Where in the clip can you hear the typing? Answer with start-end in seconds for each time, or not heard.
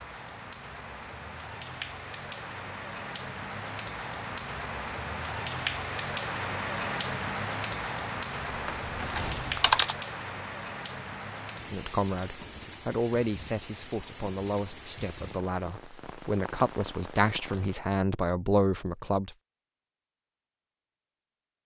8.2-9.9.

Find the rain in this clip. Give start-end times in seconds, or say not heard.
0.0-17.9.